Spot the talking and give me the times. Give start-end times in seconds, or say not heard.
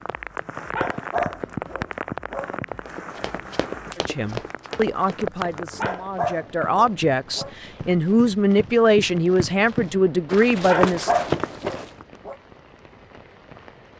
4.0-11.2.